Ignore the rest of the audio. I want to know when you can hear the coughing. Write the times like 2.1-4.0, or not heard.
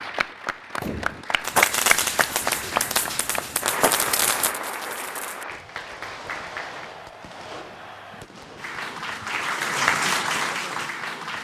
not heard.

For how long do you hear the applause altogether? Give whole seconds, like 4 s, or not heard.
10 s.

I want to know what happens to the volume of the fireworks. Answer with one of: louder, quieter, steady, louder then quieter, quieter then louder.
quieter.